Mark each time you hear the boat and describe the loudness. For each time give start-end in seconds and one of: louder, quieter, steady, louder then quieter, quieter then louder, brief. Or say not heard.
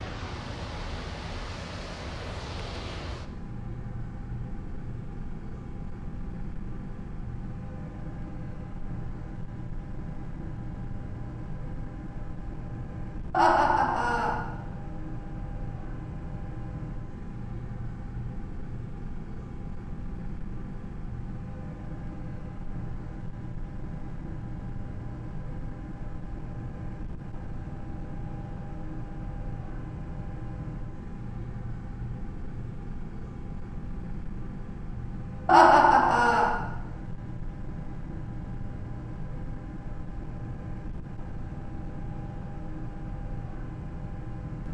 0.0-44.6 steady.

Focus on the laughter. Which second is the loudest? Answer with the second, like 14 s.
36 s.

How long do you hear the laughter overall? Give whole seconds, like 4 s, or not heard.
2 s.